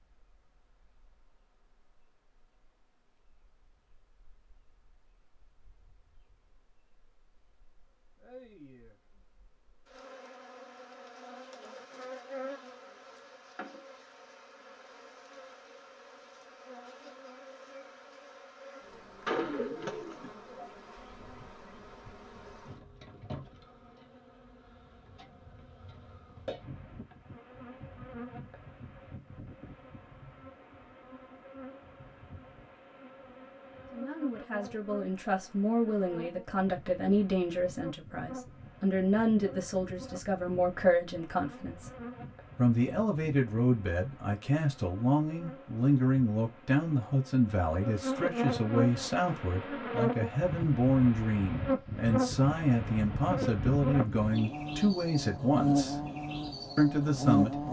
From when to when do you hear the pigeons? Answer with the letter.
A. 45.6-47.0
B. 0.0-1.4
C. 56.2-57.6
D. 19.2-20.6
D.